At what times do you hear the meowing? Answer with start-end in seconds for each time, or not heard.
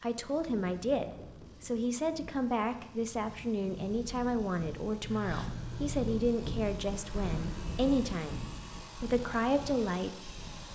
5.0-6.2.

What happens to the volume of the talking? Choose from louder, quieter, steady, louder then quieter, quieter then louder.
steady.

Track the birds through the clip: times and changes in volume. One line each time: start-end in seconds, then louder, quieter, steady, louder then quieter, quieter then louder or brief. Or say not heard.
not heard.